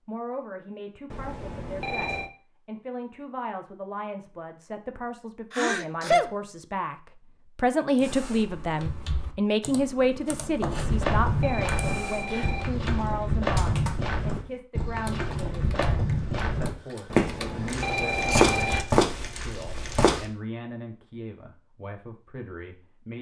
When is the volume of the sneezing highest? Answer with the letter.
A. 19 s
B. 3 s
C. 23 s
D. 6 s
D.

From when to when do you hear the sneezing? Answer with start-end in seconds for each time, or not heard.
5.5-6.2, 18.1-18.6.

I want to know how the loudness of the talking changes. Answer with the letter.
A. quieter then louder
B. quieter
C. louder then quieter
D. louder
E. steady
C.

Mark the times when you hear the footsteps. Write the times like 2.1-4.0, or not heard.
10.7-20.2.